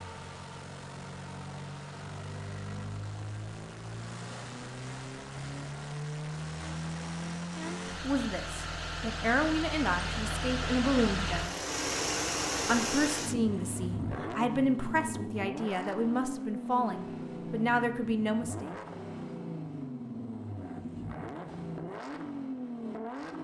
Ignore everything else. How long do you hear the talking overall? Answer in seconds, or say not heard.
10 s.